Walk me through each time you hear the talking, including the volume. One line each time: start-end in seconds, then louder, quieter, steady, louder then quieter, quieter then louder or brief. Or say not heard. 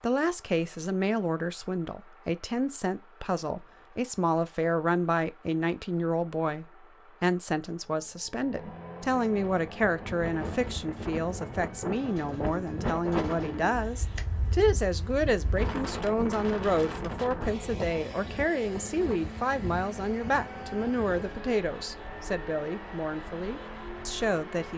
0.0-24.7 steady.